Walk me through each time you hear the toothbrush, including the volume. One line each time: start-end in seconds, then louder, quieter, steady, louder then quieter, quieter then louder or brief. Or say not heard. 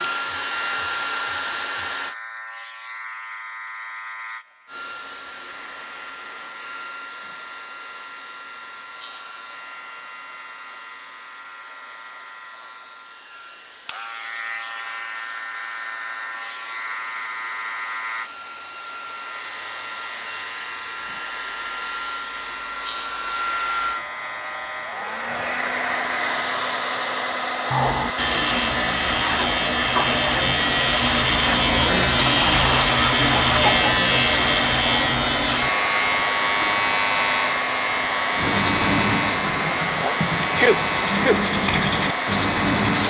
38.4-43.0 quieter then louder.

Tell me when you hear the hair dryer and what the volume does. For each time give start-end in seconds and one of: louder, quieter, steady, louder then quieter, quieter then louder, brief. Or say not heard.
0.0-2.1 brief
4.7-43.0 louder.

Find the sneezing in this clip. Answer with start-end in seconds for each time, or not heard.
40.0-41.4.